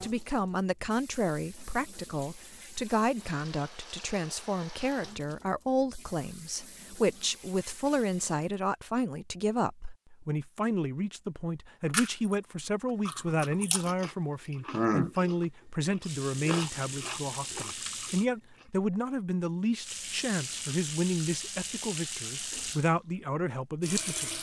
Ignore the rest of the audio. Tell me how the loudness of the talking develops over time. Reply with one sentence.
The volume of the talking stays about the same.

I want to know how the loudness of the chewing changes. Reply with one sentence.
The volume of the chewing goes up, then down.